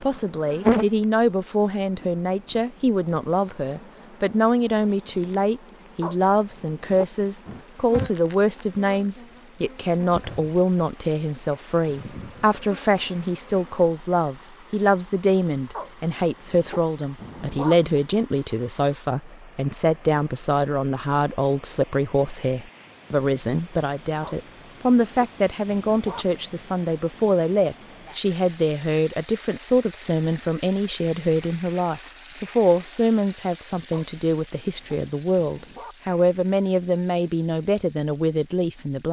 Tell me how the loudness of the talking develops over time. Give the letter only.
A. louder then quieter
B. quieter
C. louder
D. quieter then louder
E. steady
E.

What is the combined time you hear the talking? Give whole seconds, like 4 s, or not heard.
39 s.